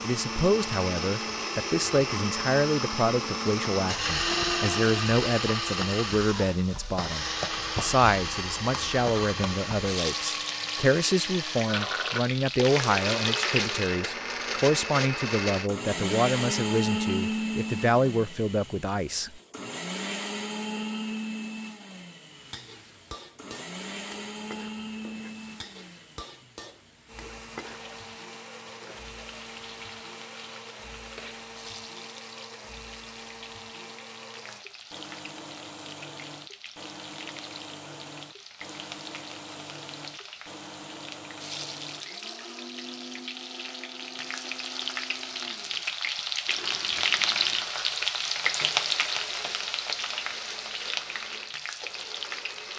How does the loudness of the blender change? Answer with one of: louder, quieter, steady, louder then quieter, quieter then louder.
quieter.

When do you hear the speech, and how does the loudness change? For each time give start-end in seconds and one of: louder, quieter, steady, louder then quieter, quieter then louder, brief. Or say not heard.
0.0-19.4 steady.